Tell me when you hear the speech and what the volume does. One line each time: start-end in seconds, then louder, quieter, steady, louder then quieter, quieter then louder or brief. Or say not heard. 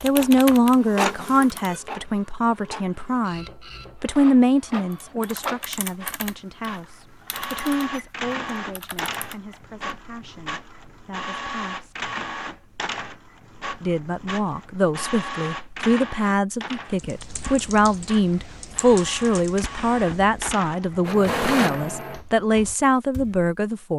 0.0-12.1 quieter
13.8-23.9 steady.